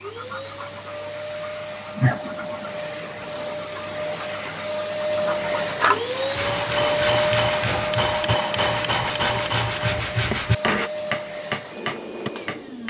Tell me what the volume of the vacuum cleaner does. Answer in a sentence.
The loudness of the vacuum cleaner goes up, then down.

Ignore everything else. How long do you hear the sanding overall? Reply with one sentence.
The sanding can be heard for 11 seconds in total.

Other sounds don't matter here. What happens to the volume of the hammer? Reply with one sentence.
The loudness of the hammer stays about the same.